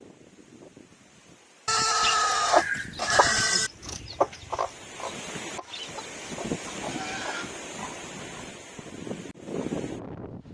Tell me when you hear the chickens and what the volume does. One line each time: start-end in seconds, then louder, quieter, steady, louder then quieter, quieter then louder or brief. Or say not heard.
2.0-7.5 quieter.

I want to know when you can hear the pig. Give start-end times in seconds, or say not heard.
1.6-3.7, 6.7-8.5.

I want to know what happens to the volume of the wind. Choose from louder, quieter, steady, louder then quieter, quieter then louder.
louder.